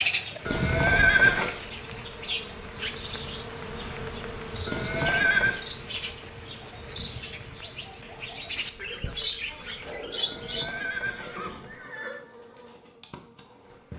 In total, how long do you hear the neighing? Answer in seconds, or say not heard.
4 s.